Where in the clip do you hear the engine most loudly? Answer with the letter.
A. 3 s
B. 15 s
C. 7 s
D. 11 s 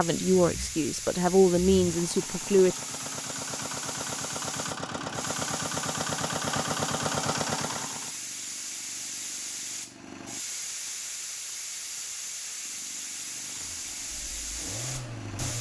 C.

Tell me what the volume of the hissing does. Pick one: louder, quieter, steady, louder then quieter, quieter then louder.
steady.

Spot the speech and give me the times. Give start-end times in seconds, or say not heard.
0.0-2.8.